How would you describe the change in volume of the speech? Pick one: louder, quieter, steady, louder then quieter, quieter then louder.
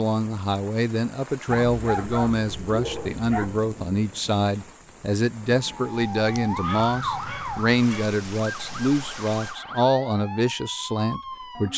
steady.